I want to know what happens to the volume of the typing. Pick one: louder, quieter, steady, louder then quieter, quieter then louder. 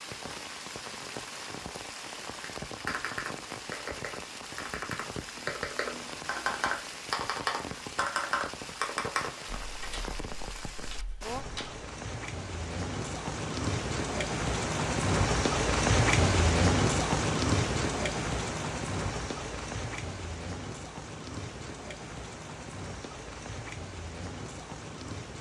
louder then quieter.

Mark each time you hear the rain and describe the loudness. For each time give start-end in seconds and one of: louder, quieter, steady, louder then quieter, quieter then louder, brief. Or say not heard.
0.0-25.3 louder then quieter.